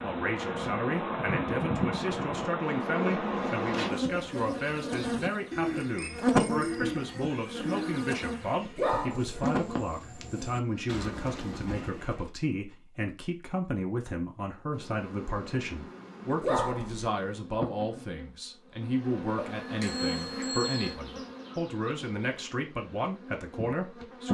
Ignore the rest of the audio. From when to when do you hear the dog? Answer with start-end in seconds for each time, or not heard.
8.8-9.4, 16.4-17.1.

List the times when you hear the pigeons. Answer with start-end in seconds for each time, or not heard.
2.6-12.3.